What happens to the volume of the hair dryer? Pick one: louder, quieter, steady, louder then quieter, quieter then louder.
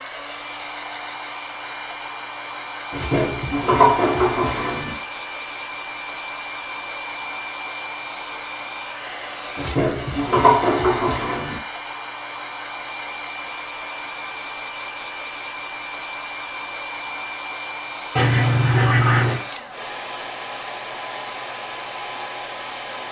steady.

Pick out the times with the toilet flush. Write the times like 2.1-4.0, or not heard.
2.9-5.0, 9.6-11.6, 18.1-19.4.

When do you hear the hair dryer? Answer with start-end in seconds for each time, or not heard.
0.0-23.0.